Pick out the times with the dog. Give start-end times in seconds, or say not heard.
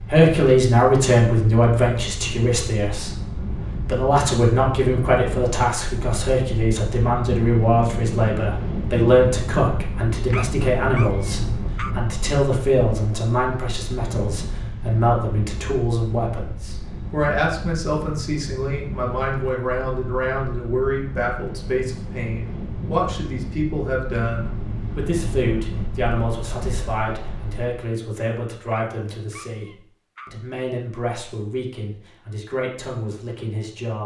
10.3-11.9, 28.7-30.4.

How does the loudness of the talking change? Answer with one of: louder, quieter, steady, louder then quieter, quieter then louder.
quieter.